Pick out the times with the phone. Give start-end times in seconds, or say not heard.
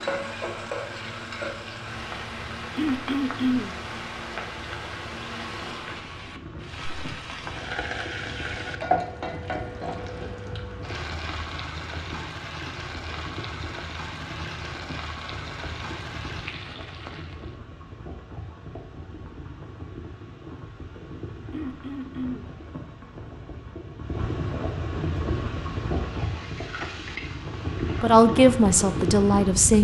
not heard.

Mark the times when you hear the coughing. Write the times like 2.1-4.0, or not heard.
2.8-3.8, 21.5-22.5.